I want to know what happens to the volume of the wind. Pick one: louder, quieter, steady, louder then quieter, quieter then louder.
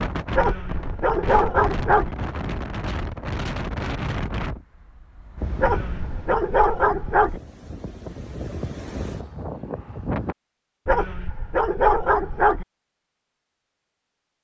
quieter then louder.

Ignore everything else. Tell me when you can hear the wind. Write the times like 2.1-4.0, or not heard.
0.0-10.3.